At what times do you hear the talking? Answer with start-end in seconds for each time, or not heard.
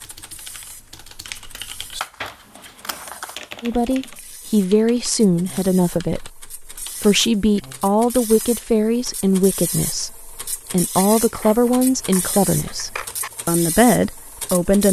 3.6-14.8.